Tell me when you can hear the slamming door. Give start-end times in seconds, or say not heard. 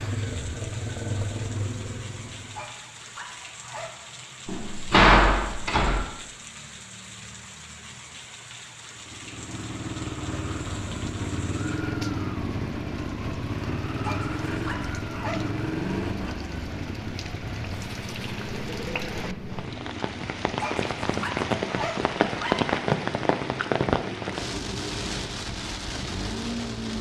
4.5-6.0.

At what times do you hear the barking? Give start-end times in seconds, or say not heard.
2.5-4.0, 14.0-15.5, 20.6-22.7.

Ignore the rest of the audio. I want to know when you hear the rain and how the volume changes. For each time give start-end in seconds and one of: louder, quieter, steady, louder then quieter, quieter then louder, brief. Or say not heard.
0.0-26.9 louder.